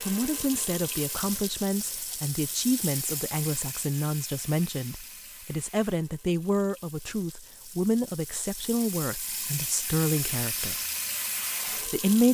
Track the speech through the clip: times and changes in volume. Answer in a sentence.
The speech can be heard from 0.1 to 10.8 s, at a steady volume; and briefly from 11.8 to 12.3 s.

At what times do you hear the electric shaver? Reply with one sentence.
You can't hear the electric shaver here.